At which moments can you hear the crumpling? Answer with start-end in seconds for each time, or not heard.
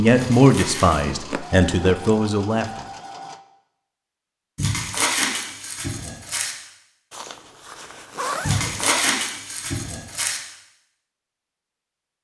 0.1-1.1, 4.5-6.5, 8.4-10.4.